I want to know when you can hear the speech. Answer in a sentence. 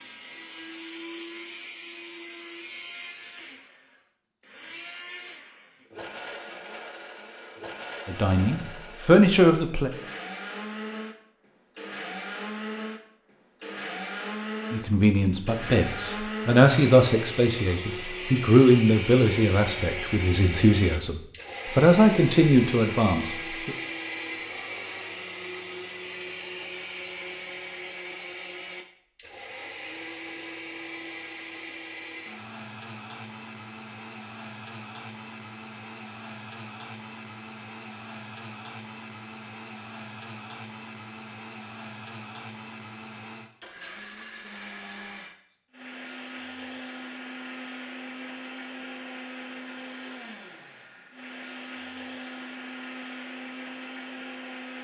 You can hear the speech from 8.1 to 9.9 s and from 14.7 to 23.8 s.